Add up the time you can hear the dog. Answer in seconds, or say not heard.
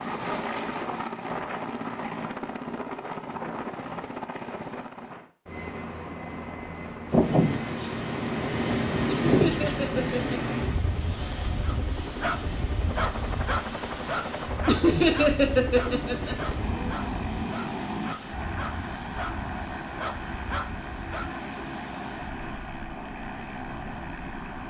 10 s.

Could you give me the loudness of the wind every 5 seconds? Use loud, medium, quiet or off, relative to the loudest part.
off, loud, medium, quiet, quiet.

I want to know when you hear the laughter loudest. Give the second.
15 s.